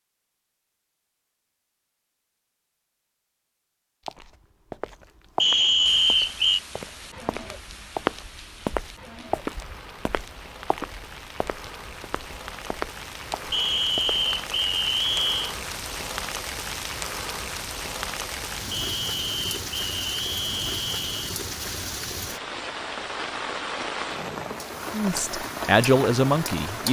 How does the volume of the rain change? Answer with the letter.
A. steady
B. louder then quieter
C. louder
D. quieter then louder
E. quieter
C.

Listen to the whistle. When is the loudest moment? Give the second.
6 s.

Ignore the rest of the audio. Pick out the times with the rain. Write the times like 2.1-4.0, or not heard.
5.8-26.8.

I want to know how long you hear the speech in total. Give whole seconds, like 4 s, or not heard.
2 s.